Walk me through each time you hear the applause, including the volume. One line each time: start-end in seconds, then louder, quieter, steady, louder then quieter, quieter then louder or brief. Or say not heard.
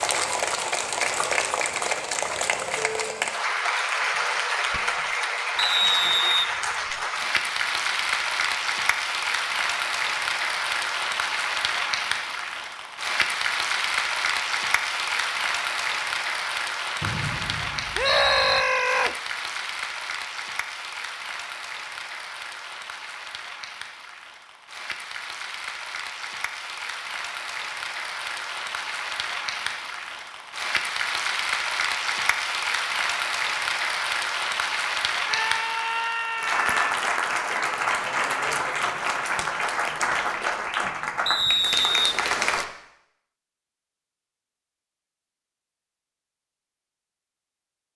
0.0-42.6 quieter then louder.